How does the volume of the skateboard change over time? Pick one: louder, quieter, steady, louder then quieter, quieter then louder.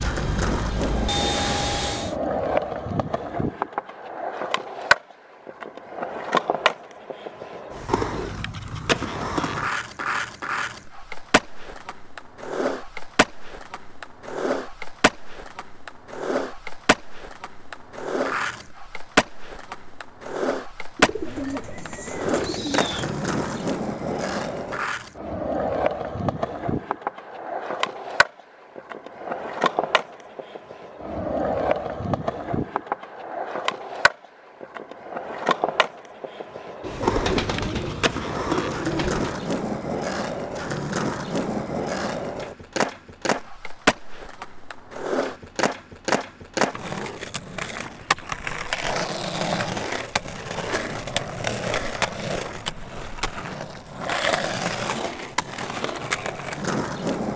steady.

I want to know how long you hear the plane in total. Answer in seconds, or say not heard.
2 s.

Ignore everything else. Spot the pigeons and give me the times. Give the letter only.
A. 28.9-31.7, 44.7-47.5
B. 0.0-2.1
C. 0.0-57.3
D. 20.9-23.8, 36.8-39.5
D.